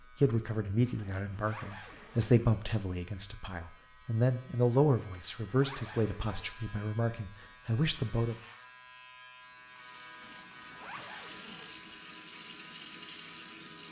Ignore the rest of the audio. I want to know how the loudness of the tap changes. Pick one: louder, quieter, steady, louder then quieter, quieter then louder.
louder.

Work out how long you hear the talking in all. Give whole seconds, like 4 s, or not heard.
8 s.